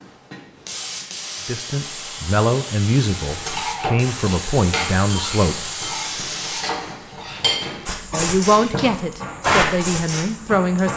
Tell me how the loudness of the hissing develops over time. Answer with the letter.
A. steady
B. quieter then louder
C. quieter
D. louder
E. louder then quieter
D.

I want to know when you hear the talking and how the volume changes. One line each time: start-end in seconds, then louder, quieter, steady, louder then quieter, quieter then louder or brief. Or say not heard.
1.4-5.7 quieter then louder
8.1-10.9 brief.